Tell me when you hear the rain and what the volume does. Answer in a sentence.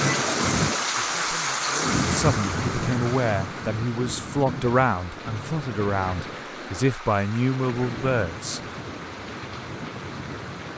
You can hear the rain from 0.0 to 10.7 s, getting quieter.